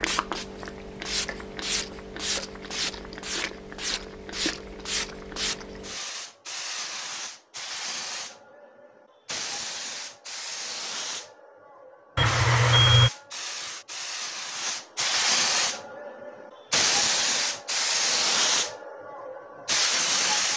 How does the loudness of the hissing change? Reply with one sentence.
The loudness of the hissing goes up.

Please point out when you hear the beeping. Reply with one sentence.
You can hear the beeping from 12.2 to 13.1 s.